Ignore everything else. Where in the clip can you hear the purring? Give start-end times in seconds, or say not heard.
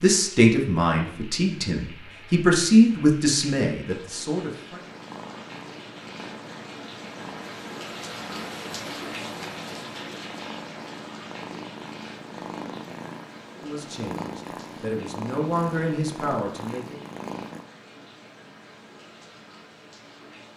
4.8-17.6.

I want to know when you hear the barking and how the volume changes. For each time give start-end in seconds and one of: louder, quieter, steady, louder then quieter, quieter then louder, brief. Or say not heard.
not heard.